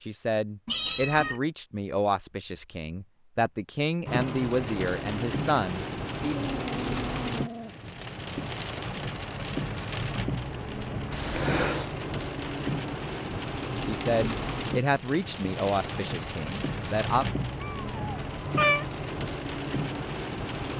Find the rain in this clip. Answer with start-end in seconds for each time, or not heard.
4.0-20.7.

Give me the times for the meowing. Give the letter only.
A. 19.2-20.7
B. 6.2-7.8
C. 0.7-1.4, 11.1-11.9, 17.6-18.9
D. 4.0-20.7
C.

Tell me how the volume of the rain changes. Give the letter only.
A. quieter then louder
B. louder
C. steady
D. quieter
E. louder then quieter
C.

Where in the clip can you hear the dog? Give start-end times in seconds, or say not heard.
6.2-7.8.